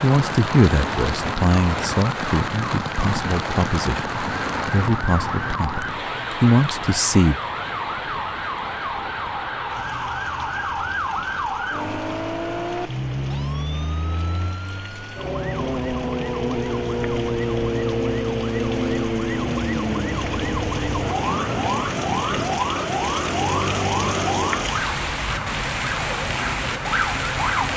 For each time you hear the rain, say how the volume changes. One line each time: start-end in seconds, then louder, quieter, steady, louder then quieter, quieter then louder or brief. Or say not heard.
0.0-27.7 quieter then louder.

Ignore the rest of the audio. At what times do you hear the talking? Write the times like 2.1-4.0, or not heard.
0.0-7.4.